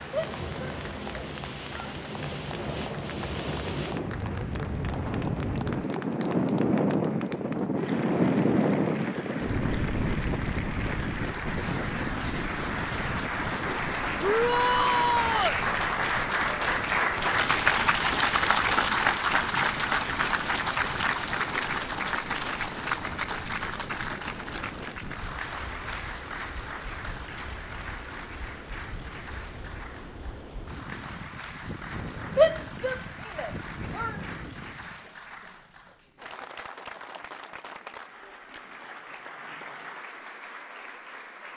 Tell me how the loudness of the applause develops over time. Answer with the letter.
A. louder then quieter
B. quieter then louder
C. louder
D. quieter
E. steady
A.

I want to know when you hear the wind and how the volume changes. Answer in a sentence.
You can hear the wind from 0.0 to 35.0 s, getting quieter.